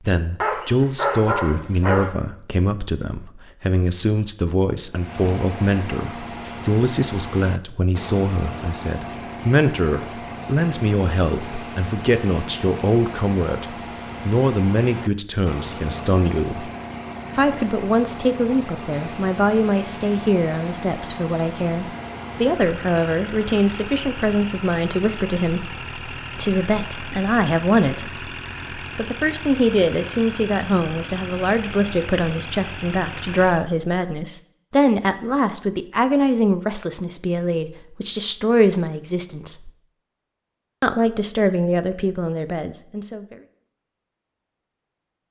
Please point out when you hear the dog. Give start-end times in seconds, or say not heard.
0.4-2.1.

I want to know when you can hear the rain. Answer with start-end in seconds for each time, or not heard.
not heard.